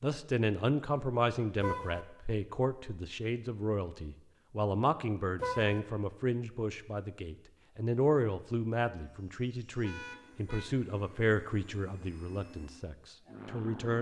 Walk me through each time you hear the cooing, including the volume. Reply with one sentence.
You can't hear the cooing here.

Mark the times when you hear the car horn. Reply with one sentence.
You can hear the car horn from 1.6 to 2.0 s, from 5.3 to 5.8 s and from 9.8 to 10.7 s.